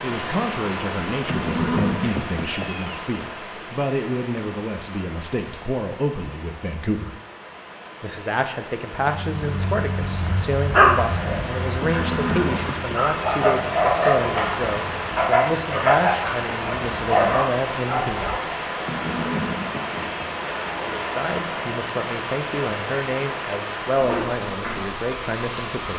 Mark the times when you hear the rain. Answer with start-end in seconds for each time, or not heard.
0.0-25.9.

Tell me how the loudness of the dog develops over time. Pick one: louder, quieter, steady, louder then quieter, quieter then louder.
quieter then louder.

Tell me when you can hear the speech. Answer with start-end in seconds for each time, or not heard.
0.0-7.2, 8.0-18.4, 20.8-25.9.